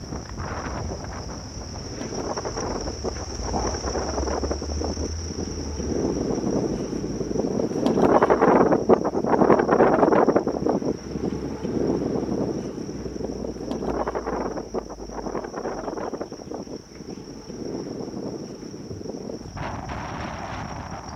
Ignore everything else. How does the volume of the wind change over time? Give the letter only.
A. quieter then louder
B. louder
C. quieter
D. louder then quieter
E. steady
D.